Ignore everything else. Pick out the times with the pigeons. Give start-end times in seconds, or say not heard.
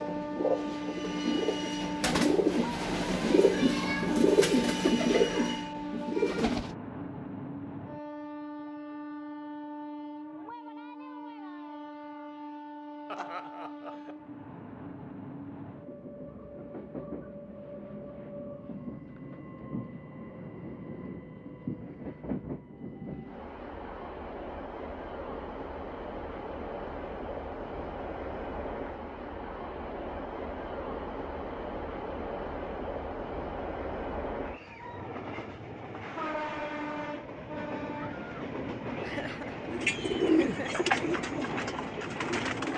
0.0-6.8, 39.7-42.7.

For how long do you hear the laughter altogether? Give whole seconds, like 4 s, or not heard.
3 s.